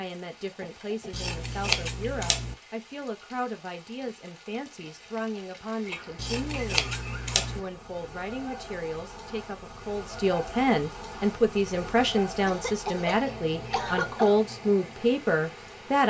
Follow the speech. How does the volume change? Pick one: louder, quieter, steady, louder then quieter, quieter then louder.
louder.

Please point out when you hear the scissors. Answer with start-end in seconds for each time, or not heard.
1.1-2.5, 6.2-7.6, 13.2-14.2.